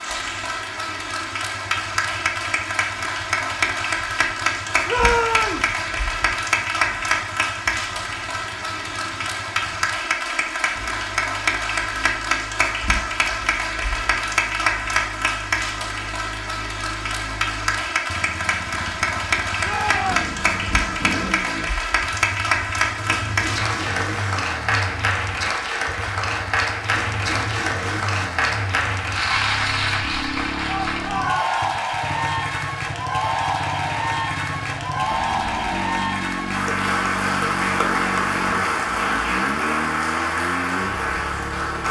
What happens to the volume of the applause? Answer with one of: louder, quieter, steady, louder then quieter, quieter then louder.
steady.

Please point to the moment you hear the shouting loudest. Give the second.
5 s.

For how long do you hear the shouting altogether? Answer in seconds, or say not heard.
3 s.